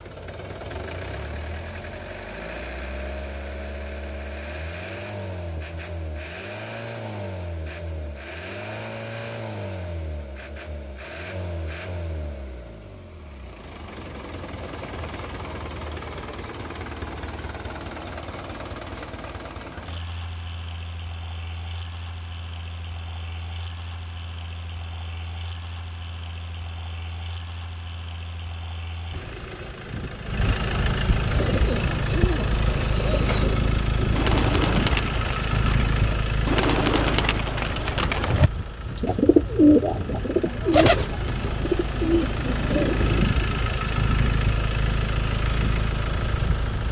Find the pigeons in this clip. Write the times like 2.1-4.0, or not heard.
31.3-43.2.